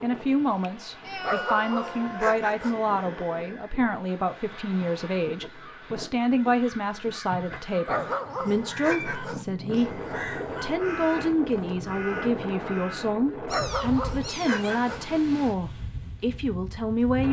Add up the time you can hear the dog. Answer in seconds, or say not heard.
5 s.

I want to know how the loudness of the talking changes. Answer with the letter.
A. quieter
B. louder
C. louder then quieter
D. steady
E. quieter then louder
D.